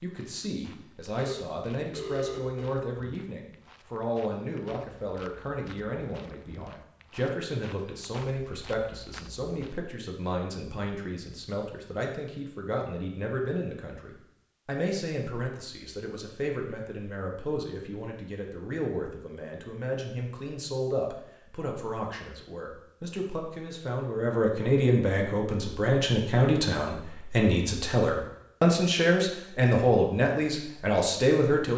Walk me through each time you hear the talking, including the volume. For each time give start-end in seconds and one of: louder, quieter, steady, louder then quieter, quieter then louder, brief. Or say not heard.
0.0-31.7 louder.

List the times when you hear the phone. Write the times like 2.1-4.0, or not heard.
1.1-2.8.